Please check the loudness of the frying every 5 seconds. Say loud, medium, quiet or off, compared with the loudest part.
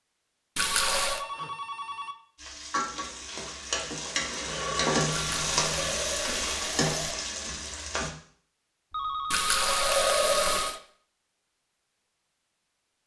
loud, loud, off.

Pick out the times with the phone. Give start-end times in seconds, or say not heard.
0.6-2.1, 4.5-6.0, 8.9-10.8.